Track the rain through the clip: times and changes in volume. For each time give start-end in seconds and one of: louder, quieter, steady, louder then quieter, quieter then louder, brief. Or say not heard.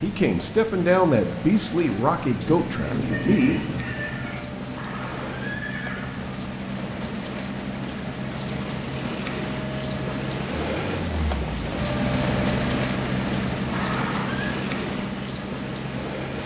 0.0-16.4 louder.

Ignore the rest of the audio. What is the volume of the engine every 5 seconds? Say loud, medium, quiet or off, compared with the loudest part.
medium, medium, loud, medium.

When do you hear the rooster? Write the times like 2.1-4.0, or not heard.
2.4-4.4.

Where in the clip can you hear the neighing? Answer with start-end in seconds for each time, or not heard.
4.7-6.3, 13.7-14.6.